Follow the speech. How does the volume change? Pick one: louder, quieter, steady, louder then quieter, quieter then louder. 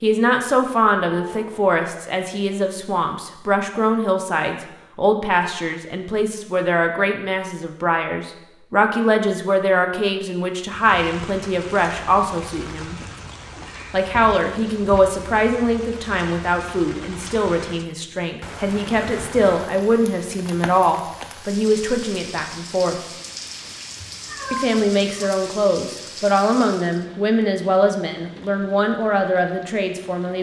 steady.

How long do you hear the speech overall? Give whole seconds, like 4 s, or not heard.
28 s.